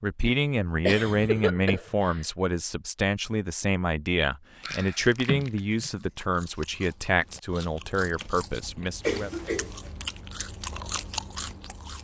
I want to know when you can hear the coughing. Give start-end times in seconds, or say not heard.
0.8-2.2, 4.6-5.9, 9.1-9.8.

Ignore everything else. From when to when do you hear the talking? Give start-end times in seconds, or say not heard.
0.0-9.3.